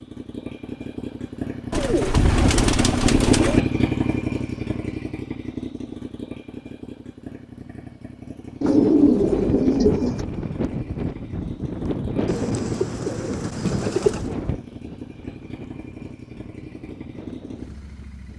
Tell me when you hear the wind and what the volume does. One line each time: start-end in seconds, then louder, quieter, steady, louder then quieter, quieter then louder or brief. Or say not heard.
8.6-18.3 quieter.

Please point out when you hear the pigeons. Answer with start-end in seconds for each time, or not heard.
1.7-3.6, 8.6-10.2, 12.2-14.3.